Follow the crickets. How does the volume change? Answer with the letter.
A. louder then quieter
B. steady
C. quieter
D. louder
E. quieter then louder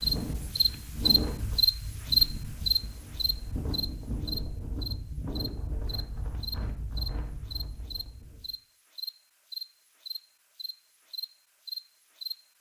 C.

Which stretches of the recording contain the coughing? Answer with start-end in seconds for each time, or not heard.
not heard.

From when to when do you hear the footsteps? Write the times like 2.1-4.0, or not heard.
not heard.